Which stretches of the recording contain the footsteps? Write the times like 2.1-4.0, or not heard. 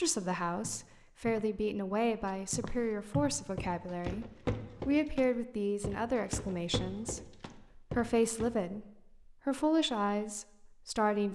0.1-8.6.